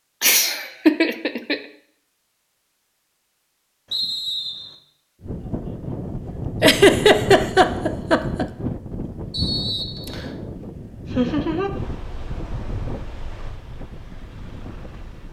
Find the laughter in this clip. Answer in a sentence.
You can hear the laughter from 0.2 to 1.6 s, from 6.6 to 8.4 s and from 11.1 to 11.7 s.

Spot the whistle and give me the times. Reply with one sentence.
The whistle can be heard from 3.9 to 4.8 s and from 9.3 to 10.3 s.